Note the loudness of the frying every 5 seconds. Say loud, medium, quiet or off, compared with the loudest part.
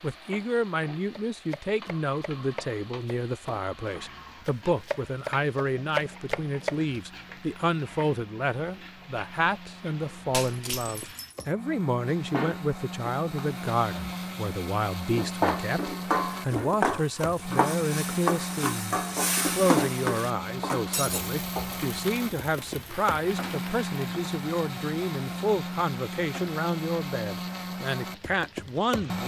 quiet, quiet, quiet, loud, medium, quiet.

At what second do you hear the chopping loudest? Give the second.
6 s.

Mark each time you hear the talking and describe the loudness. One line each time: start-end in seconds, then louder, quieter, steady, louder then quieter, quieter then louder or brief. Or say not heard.
0.0-29.2 steady.